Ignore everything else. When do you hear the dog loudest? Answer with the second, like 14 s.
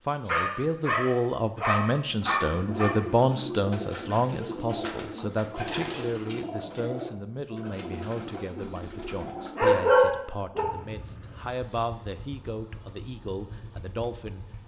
10 s.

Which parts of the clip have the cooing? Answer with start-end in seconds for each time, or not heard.
2.0-10.1.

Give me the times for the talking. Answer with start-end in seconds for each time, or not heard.
0.1-14.4.